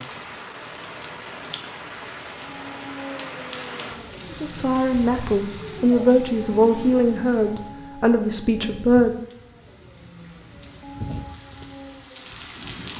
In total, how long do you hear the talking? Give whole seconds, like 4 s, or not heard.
5 s.